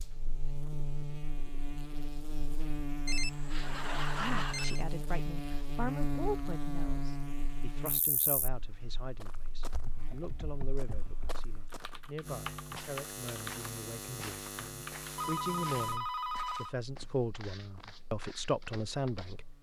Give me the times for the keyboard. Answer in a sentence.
You can hear the keyboard from 9.7 to 15.3 s.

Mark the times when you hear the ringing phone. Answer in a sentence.
You can hear the ringing phone from 3.0 to 4.8 s and from 15.2 to 16.8 s.